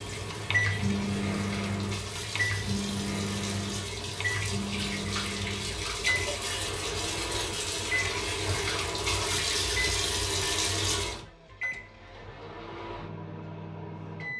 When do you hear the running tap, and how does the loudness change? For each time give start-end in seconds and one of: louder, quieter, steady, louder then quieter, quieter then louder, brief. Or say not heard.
0.0-11.2 louder.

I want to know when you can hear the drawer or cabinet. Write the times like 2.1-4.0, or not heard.
not heard.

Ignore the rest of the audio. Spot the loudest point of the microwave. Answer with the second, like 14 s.
1 s.